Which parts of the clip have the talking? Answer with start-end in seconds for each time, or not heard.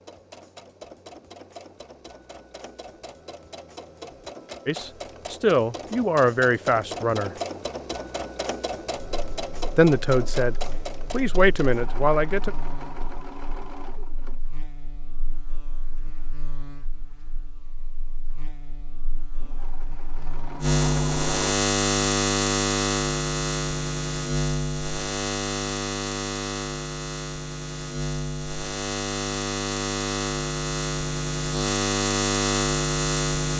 4.7-7.3, 9.8-12.5.